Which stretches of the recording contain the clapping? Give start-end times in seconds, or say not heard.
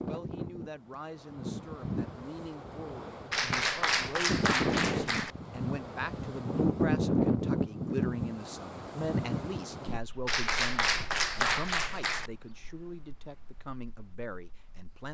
3.3-5.3, 10.2-12.3.